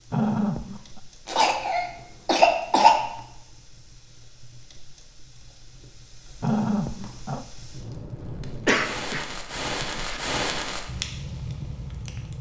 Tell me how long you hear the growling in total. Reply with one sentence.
The growling can be heard for 2 seconds in total.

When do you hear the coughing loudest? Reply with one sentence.
The loudest moment of the coughing is at 3 seconds.